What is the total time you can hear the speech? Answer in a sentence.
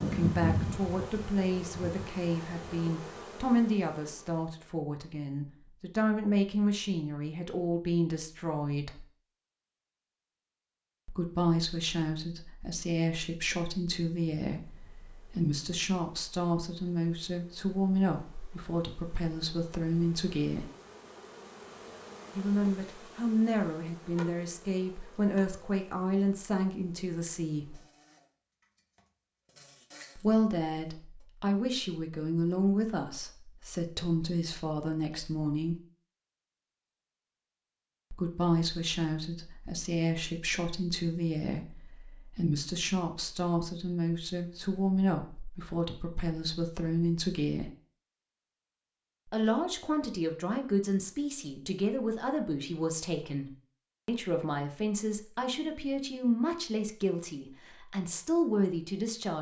You can hear the speech for 49 seconds altogether.